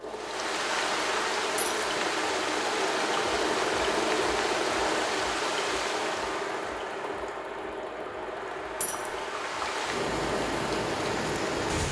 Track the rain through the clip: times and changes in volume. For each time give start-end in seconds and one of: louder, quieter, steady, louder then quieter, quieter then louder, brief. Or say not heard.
0.0-11.8 quieter then louder.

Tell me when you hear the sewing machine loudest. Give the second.
4 s.